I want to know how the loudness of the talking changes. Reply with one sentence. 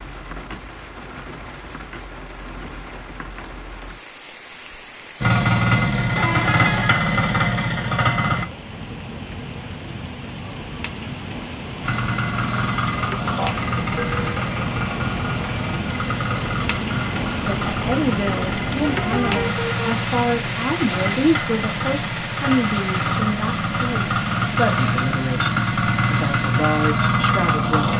The volume of the talking stays about the same.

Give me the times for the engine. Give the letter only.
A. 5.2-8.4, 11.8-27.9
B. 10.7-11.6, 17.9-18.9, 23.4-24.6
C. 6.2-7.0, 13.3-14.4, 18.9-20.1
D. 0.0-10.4
A.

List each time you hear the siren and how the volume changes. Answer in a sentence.
The siren can't be heard in this clip.